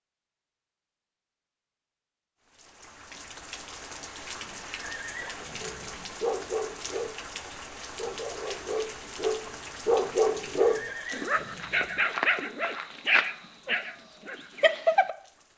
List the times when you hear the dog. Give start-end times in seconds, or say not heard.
5.6-15.2.